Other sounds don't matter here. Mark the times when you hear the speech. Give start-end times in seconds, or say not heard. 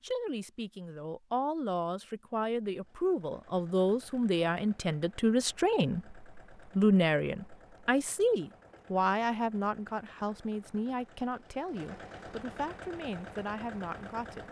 0.0-14.4.